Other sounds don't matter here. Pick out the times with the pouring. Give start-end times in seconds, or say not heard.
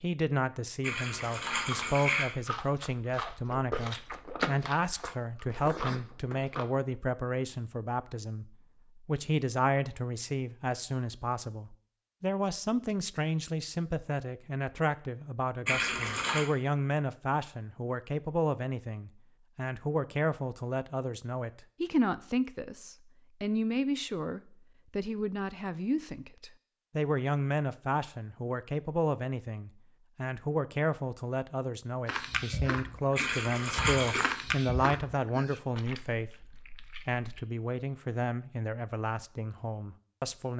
0.8-2.2, 15.7-16.4, 33.1-34.3.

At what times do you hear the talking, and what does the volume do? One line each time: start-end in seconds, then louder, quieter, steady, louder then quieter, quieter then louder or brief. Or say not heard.
0.0-40.5 steady.